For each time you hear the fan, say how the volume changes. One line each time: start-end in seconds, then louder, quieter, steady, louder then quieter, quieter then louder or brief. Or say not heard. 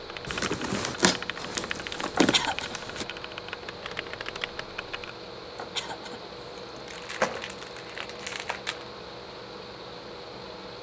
0.0-10.7 steady.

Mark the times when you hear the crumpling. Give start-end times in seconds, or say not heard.
0.2-3.0, 6.8-8.9.